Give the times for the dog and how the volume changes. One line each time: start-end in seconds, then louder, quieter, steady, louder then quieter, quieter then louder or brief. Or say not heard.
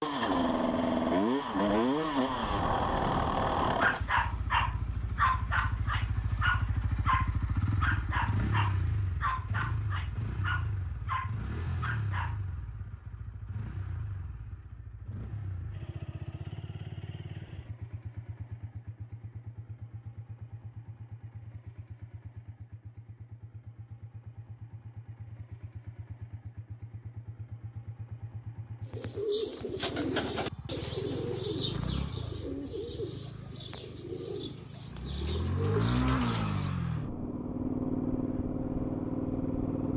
3.8-12.4 quieter.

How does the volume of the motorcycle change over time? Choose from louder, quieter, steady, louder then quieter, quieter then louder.
quieter then louder.